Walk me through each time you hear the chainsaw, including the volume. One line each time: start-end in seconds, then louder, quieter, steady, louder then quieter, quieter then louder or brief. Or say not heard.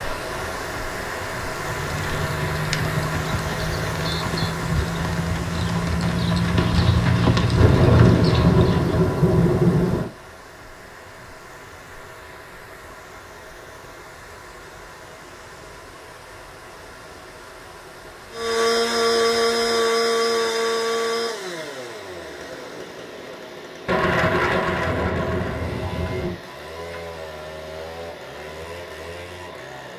18.3-29.9 quieter.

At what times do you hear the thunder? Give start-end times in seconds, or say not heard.
7.5-10.1, 23.9-26.4.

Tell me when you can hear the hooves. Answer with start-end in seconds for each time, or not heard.
1.4-9.1.